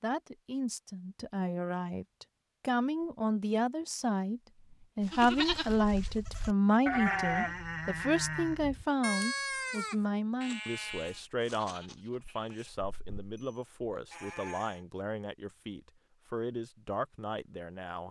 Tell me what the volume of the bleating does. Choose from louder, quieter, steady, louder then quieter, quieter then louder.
quieter.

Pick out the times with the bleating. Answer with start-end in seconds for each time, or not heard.
5.0-14.8.